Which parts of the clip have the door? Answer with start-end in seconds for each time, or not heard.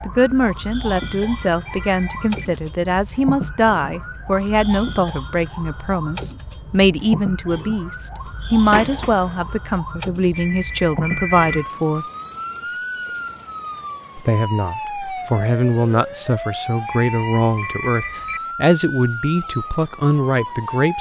8.7-9.4.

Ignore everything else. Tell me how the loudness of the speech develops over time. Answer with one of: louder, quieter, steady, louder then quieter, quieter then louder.
steady.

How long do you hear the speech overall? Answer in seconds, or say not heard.
19 s.